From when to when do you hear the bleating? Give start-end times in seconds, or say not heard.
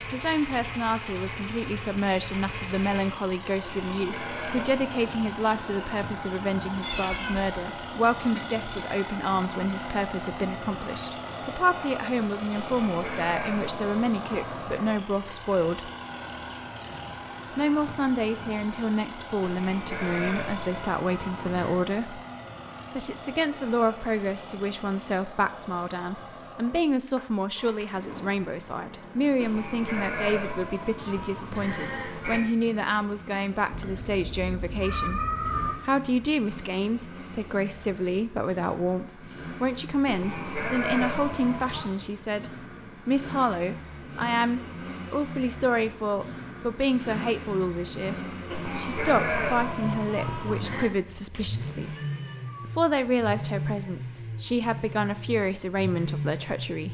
3.6-5.1, 12.6-14.8, 19.4-21.8, 29.4-32.4, 40.0-41.9, 48.5-50.9.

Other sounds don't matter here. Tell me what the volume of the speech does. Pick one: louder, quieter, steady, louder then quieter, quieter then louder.
steady.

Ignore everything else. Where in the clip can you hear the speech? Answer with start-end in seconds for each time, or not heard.
0.1-15.9, 17.6-22.2, 22.9-51.9, 52.6-56.9.